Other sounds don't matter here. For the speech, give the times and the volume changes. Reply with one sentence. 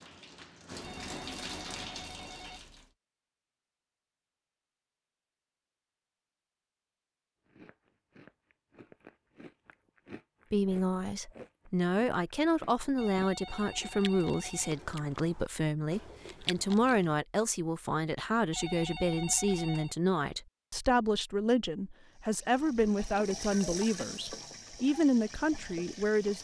You can hear the speech from 10.5 to 26.3 s, at a steady volume.